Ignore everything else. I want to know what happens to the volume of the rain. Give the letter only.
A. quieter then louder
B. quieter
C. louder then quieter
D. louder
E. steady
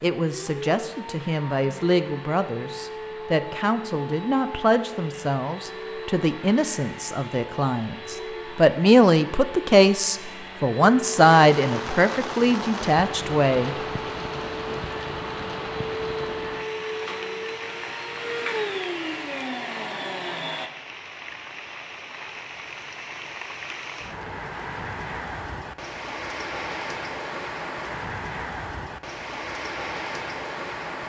A.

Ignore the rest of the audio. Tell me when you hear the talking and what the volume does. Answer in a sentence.
The talking can be heard from 0.0 to 13.8 s, getting louder.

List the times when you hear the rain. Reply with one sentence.
You can hear the rain from 11.0 to 31.0 s.